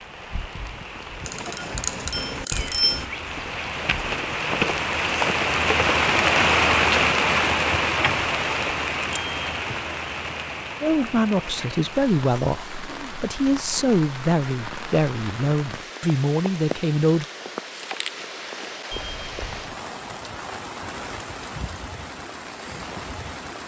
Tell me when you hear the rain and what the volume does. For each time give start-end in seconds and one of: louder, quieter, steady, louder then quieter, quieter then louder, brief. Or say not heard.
0.0-23.6 louder then quieter.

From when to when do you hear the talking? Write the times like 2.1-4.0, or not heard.
10.8-17.2.